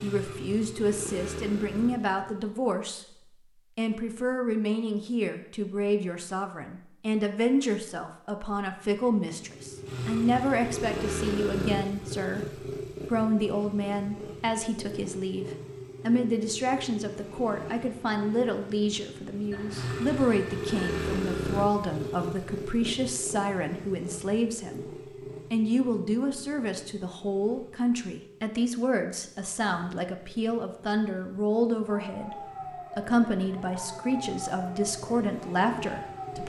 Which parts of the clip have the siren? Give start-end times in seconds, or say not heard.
31.9-36.4.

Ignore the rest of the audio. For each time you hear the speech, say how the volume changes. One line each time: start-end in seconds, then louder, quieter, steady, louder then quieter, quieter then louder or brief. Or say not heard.
0.0-36.4 steady.